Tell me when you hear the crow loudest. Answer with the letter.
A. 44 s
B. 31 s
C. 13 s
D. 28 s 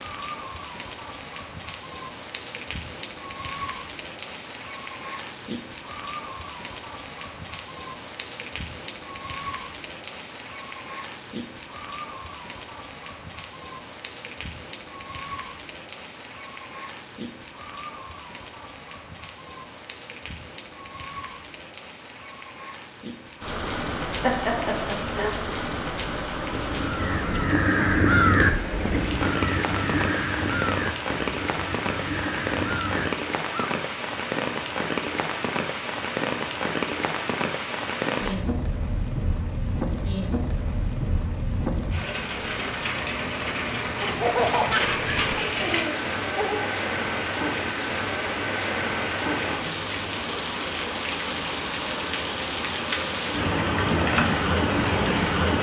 D.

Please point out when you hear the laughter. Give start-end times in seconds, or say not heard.
24.2-25.4, 44.0-46.7.